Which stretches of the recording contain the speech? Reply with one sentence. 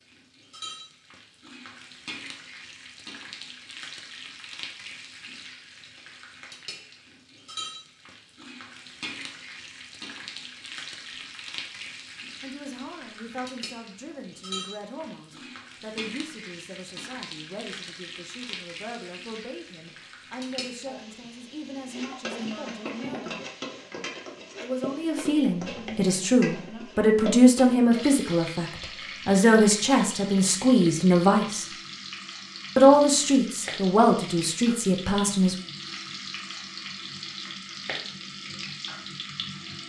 You can hear the speech from 12.4 to 23.4 s, from 24.6 to 31.6 s and from 32.8 to 35.5 s.